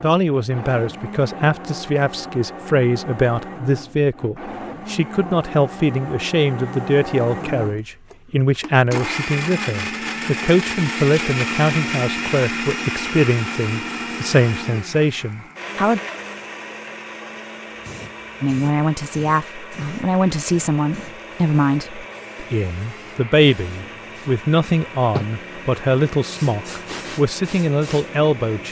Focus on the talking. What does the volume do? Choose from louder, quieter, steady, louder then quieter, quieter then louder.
steady.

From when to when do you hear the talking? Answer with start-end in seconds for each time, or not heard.
0.0-16.0, 18.4-28.6.